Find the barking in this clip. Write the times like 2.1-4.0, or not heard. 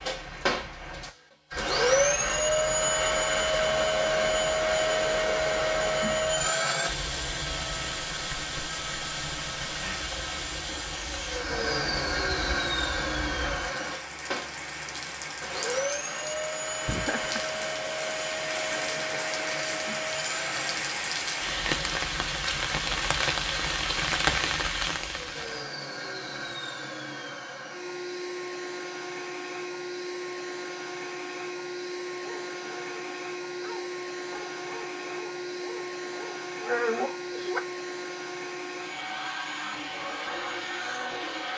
32.2-37.6.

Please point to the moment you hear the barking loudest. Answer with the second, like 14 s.
37 s.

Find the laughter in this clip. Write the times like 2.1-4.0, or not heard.
16.9-17.6.